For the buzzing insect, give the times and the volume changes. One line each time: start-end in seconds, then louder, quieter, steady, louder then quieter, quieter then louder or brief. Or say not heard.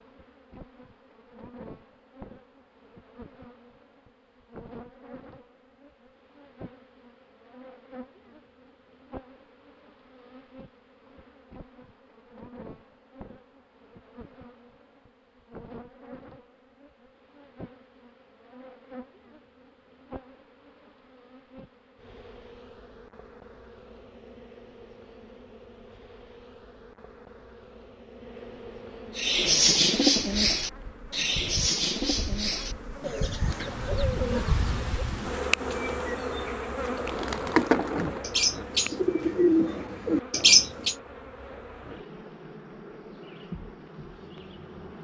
0.0-44.9 louder.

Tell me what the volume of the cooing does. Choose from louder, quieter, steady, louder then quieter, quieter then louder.
quieter then louder.